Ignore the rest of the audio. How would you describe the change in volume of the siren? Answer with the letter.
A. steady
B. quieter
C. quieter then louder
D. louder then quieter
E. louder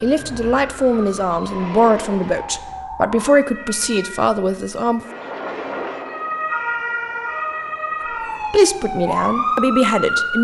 C.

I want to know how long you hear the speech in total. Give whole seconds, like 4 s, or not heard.
7 s.